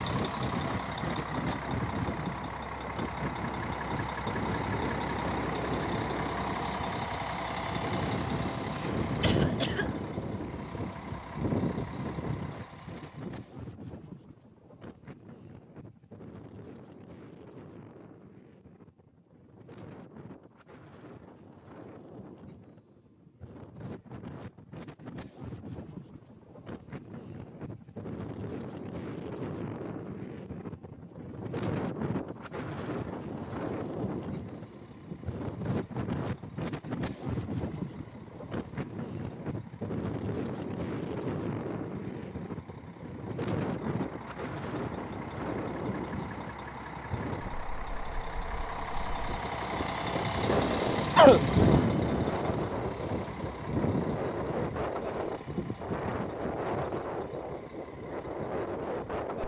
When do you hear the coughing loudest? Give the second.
51 s.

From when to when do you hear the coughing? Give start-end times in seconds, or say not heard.
8.8-10.3, 50.5-51.5.